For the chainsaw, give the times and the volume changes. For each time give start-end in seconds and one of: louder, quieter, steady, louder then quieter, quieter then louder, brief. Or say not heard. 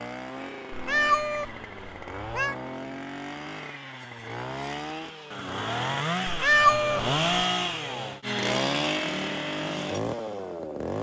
0.0-10.9 louder.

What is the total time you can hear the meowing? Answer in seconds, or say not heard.
3 s.